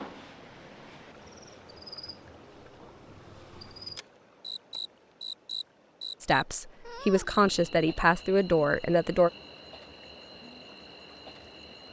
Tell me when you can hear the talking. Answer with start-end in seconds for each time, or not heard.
6.2-9.3.